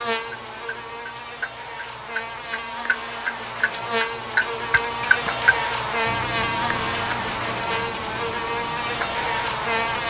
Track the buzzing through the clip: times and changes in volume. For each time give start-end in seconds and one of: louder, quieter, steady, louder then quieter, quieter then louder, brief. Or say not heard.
0.0-10.0 louder.